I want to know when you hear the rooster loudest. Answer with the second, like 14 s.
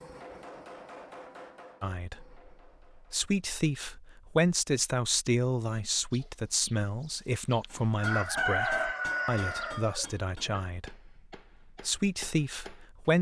9 s.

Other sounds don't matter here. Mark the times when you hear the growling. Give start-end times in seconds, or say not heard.
not heard.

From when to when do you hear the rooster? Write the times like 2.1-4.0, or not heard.
6.1-6.7, 7.5-10.1.